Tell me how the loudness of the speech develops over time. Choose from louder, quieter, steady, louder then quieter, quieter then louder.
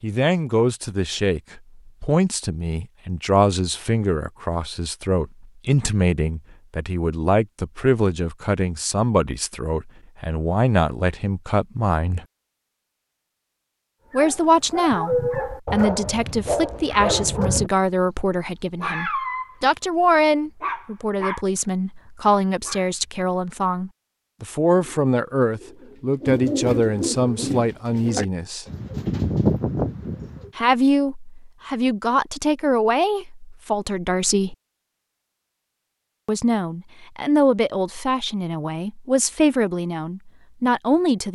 steady.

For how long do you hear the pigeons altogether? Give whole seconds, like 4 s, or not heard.
6 s.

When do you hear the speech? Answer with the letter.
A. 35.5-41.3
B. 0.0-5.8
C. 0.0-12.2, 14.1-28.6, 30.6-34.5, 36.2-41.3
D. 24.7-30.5
C.